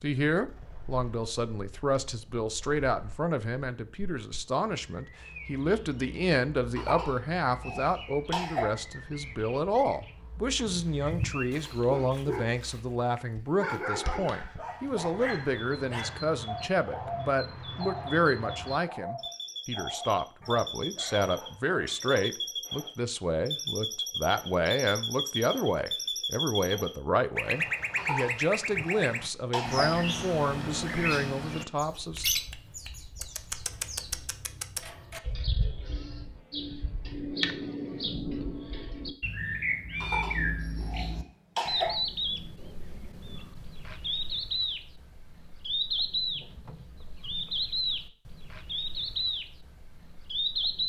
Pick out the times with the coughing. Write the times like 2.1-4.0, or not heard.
6.8-8.8, 27.9-29.9, 40.0-42.0.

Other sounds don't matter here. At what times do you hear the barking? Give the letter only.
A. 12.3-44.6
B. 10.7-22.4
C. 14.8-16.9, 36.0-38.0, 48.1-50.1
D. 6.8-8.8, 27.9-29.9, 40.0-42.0
B.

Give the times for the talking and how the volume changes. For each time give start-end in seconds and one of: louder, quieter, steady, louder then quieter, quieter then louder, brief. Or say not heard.
0.0-32.2 steady.